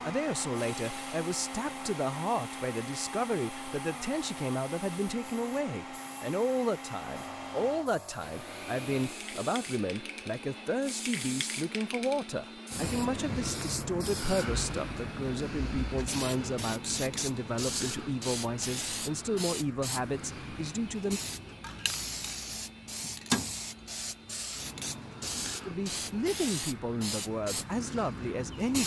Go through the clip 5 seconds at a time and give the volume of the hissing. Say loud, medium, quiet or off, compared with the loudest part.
quiet, medium, loud, loud, loud, loud.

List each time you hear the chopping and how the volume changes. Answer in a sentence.
The chopping can't be heard in this clip.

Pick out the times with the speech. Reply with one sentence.
You can hear the speech from 0.0 to 21.2 s and from 25.6 to 28.8 s.